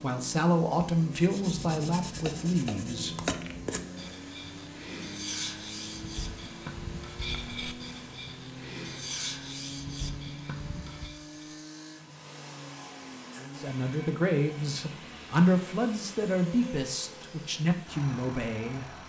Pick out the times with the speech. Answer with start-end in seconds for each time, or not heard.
0.0-3.1, 13.6-18.9.